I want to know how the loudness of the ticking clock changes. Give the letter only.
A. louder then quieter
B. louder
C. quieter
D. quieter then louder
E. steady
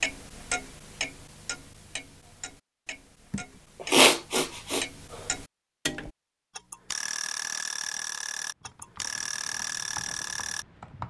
D.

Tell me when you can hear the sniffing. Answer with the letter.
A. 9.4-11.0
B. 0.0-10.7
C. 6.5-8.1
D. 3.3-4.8
D.